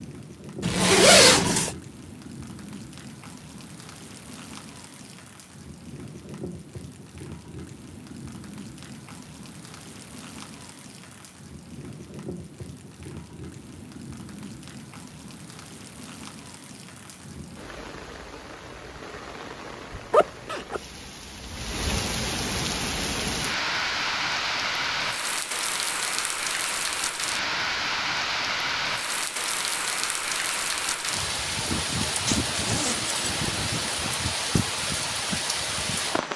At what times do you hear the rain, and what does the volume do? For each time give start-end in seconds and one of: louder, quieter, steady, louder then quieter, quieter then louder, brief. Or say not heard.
0.0-36.3 louder.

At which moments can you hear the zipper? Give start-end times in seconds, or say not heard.
0.6-1.8, 19.9-20.8, 32.2-34.0.